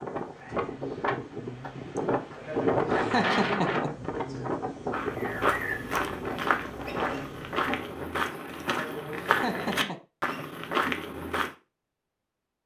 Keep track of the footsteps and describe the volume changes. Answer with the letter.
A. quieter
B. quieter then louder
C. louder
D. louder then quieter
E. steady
E.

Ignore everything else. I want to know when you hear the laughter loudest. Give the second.
3 s.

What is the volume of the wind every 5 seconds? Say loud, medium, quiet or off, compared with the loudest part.
loud, medium, off.